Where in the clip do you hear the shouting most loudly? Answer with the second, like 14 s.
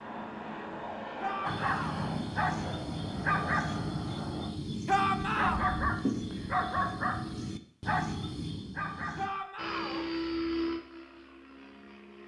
5 s.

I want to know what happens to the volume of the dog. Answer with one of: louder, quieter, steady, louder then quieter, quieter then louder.
steady.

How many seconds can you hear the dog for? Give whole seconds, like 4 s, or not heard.
8 s.